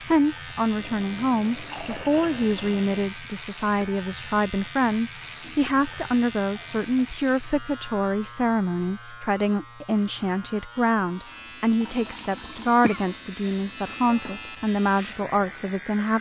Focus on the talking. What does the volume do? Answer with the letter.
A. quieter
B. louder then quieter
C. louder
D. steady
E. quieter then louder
D.